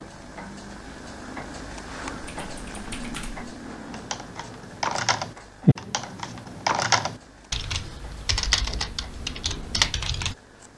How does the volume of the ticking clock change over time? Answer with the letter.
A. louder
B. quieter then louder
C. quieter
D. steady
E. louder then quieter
E.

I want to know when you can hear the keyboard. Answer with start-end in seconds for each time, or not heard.
2.2-10.3.